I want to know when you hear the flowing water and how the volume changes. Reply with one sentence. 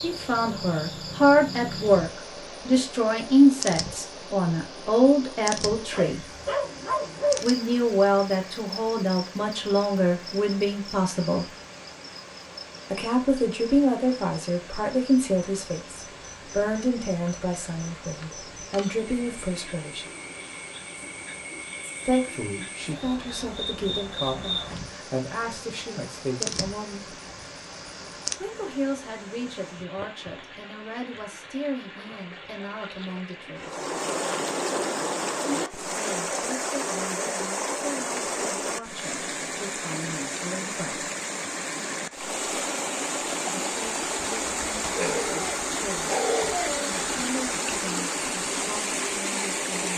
You can hear the flowing water from 0.0 to 49.9 s, getting louder.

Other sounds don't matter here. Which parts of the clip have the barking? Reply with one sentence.
The barking can be heard from 5.9 to 7.5 s and from 45.0 to 46.9 s.